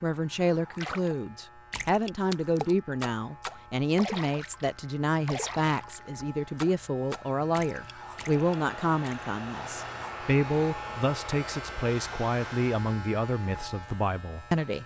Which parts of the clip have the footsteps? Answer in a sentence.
You can't hear the footsteps here.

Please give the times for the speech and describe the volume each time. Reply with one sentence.
The speech can be heard from 0.0 to 14.8 s, at a steady volume.